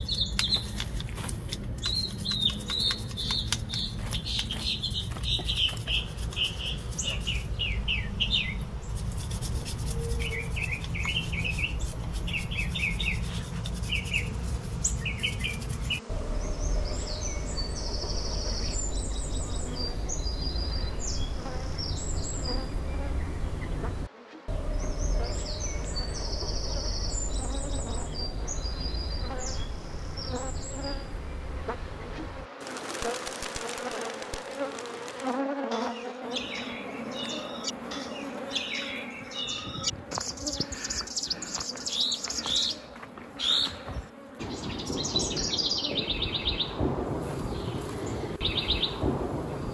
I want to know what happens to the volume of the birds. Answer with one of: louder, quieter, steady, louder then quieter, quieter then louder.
quieter then louder.